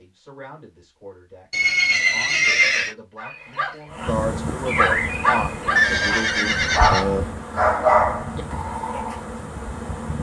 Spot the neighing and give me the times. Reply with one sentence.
The neighing can be heard from 1.5 to 3.0 s and from 5.8 to 7.2 s.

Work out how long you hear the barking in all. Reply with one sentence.
The barking can be heard for 6 seconds in total.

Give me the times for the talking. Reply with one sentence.
You can hear the talking from 0.0 to 6.5 s.